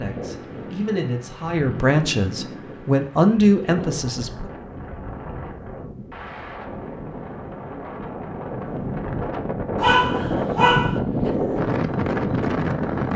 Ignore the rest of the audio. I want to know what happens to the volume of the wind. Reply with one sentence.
The volume of the wind goes up.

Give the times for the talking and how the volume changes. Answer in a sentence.
You can hear the talking from 0.0 to 4.5 s, getting louder.